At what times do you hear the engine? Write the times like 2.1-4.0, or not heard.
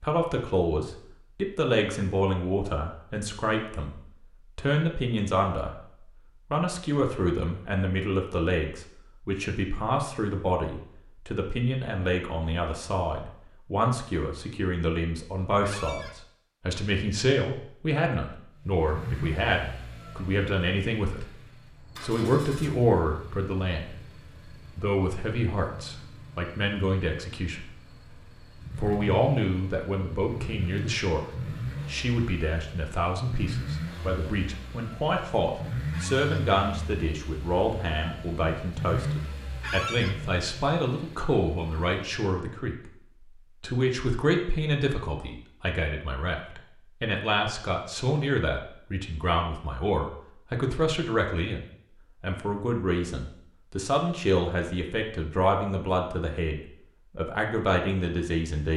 18.6-42.0.